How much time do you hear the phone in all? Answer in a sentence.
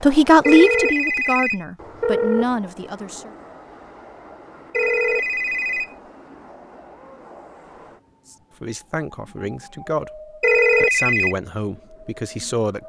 The phone can be heard for 4 seconds in total.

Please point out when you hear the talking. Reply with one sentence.
The talking can be heard from 0.0 to 3.3 s and from 8.3 to 12.8 s.